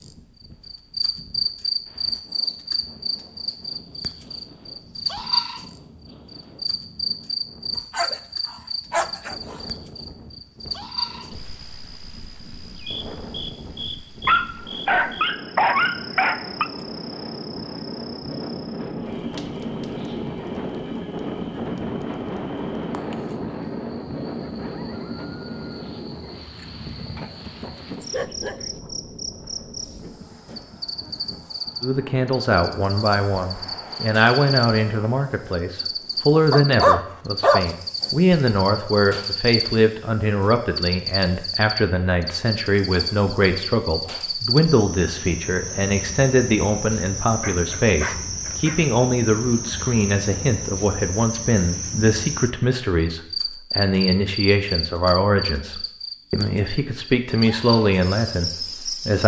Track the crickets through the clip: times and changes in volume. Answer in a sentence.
The crickets can be heard from 0.0 to 59.2 s, getting quieter then louder.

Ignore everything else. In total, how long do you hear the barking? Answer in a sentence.
The barking can be heard for 9 seconds in total.